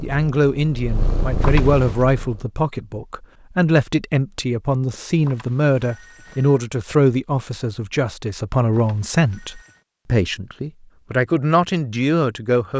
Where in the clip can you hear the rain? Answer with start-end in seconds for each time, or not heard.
not heard.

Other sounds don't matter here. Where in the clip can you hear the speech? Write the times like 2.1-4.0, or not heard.
0.0-12.7.